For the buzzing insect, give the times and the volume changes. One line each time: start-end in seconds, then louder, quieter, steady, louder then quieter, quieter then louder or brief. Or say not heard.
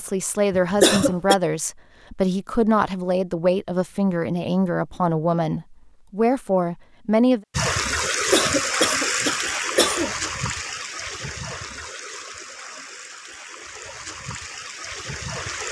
not heard.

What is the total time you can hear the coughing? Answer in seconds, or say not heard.
3 s.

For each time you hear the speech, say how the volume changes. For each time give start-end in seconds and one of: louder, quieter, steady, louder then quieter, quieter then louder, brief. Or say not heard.
0.0-7.4 steady.